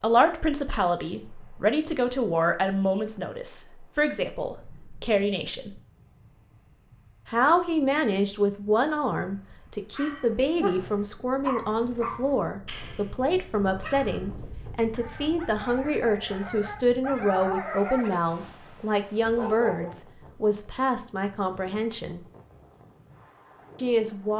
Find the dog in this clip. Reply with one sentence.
The dog can be heard from 9.9 to 19.9 s.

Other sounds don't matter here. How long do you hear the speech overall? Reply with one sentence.
The speech can be heard for 21 seconds in total.